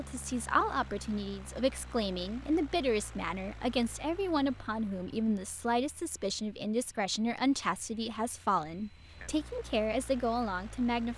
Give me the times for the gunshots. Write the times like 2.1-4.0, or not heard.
not heard.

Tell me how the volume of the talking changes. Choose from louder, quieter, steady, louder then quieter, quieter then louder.
steady.